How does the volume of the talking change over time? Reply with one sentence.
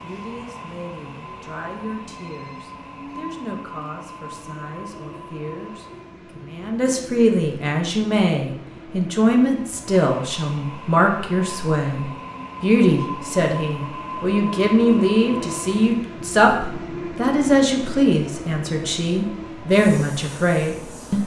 The volume of the talking goes up.